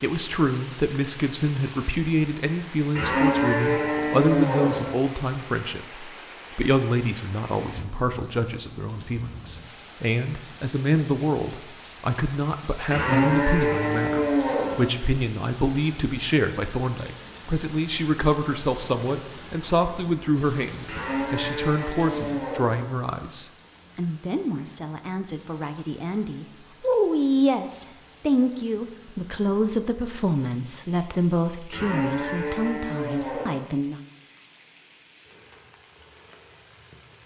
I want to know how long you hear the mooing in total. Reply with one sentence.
You can hear the mooing for 8 seconds altogether.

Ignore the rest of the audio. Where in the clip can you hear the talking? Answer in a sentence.
The talking can be heard from 0.0 to 34.0 s.